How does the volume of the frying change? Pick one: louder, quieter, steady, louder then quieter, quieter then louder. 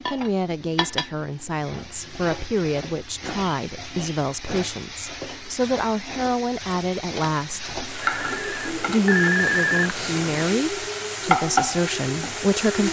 louder.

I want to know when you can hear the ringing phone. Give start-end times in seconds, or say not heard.
8.0-10.5.